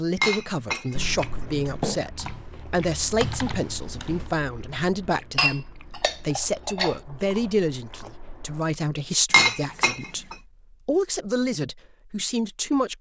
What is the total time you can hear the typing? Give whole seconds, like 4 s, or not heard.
2 s.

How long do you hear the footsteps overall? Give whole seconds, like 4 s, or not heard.
not heard.